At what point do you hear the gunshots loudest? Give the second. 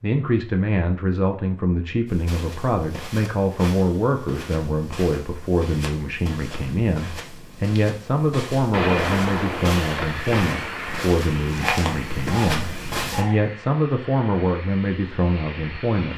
9 s.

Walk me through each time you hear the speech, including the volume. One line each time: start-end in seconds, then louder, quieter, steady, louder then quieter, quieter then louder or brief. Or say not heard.
0.0-16.1 steady.